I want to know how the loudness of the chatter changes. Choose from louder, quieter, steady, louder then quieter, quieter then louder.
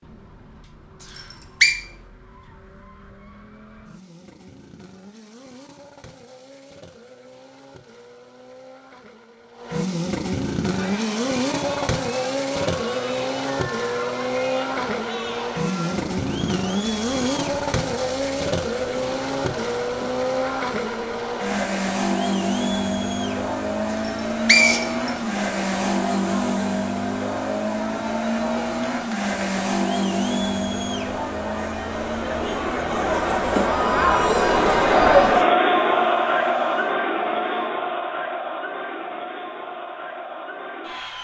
louder.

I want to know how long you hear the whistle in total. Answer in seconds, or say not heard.
2 s.